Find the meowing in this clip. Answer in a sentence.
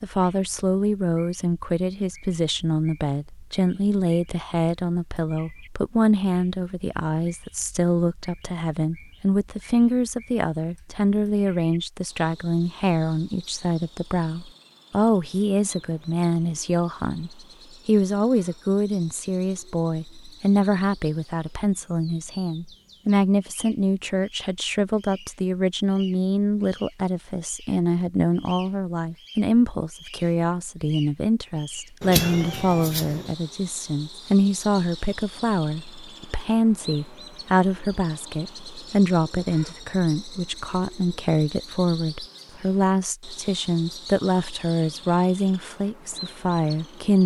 The meowing can be heard from 32.0 to 33.4 s.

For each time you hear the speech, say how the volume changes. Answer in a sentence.
You can hear the speech from 0.0 to 47.2 s, at a steady volume.